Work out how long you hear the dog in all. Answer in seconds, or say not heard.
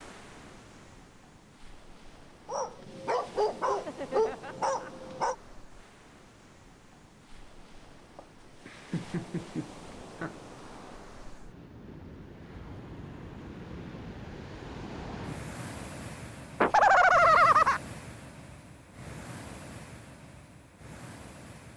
3 s.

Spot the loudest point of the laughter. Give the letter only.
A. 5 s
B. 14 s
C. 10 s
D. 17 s
D.